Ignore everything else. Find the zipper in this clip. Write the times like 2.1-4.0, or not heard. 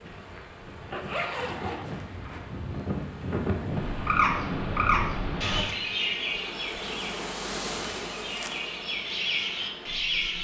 0.8-1.9.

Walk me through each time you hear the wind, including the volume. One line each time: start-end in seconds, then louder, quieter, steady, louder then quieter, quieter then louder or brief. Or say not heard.
0.0-5.7 louder.